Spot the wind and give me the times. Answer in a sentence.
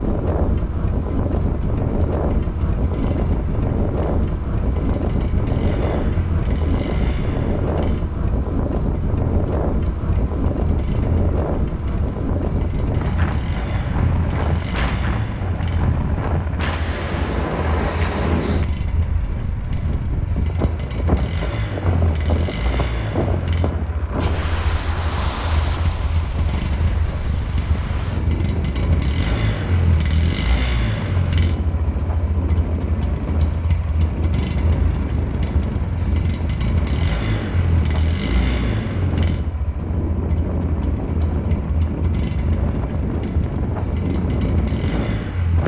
You can hear the wind from 0.0 to 45.6 s.